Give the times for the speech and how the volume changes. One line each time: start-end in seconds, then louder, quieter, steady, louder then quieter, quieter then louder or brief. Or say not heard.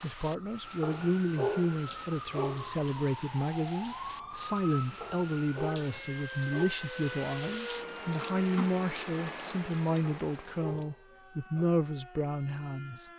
0.0-13.1 steady.